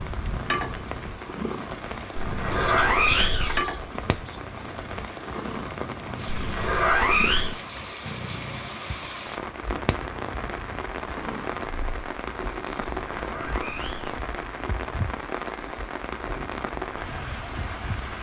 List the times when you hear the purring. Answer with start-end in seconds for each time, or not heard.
0.0-17.9.